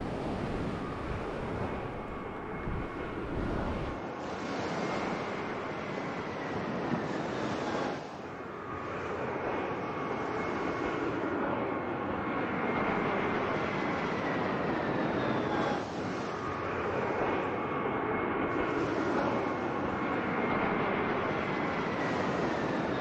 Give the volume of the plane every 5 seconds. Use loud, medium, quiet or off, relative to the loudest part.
medium, medium, loud, loud, loud.